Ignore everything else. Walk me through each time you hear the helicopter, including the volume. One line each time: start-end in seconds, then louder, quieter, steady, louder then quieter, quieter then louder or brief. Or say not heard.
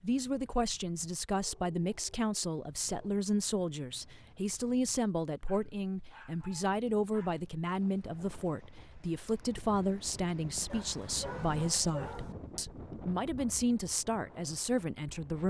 not heard.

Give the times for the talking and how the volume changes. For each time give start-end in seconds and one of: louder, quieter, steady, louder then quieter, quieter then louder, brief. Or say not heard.
0.0-15.4 steady.